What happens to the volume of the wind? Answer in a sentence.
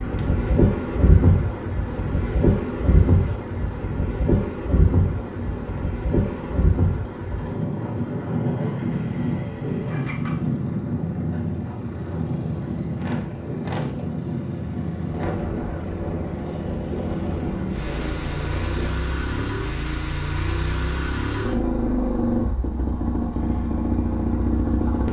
The volume of the wind goes down.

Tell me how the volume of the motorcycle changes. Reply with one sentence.
The volume of the motorcycle goes up.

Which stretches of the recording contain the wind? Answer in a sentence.
You can hear the wind from 0.0 to 19.4 s.